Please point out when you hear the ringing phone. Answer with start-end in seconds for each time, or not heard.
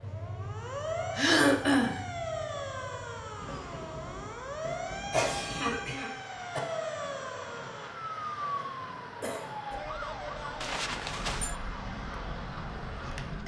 10.6-11.6.